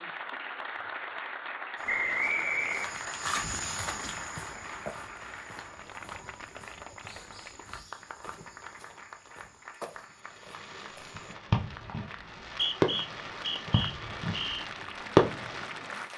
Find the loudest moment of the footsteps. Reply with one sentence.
The loudest moment of the footsteps is at 3 seconds.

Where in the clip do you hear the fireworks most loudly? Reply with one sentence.
The volume of the fireworks peaks at 15 seconds.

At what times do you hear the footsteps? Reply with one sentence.
You can hear the footsteps from 1.8 to 11.3 s.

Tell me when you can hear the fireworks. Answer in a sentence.
You can hear the fireworks from 10.3 to 15.8 s.